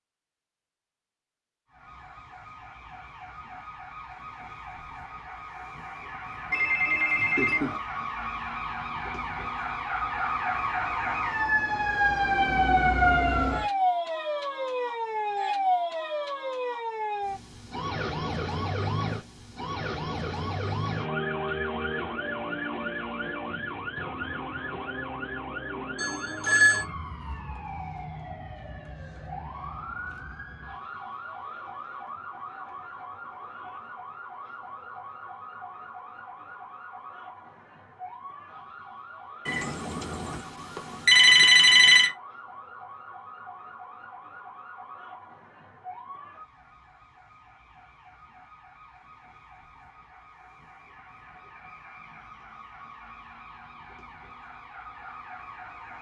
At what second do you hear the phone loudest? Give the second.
41 s.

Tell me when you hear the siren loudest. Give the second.
13 s.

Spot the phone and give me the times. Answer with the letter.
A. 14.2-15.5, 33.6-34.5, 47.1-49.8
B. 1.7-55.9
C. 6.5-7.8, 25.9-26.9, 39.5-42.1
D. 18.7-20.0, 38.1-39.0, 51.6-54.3
C.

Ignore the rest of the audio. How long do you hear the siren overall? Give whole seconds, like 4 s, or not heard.
54 s.